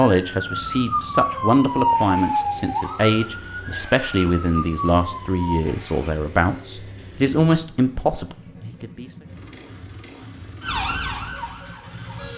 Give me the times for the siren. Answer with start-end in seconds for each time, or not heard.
0.0-5.7, 10.6-12.3.